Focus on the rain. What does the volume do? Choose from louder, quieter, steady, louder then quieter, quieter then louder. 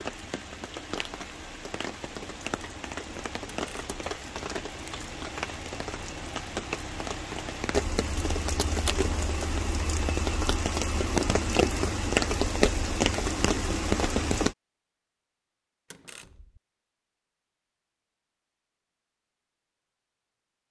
louder.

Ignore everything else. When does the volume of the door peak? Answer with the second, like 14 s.
9 s.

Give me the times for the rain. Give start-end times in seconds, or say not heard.
0.0-14.6.